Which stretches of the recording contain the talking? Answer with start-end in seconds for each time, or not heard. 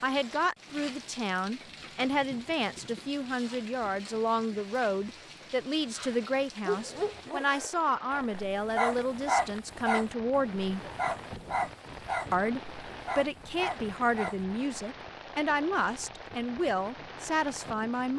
0.0-10.8, 12.3-18.1.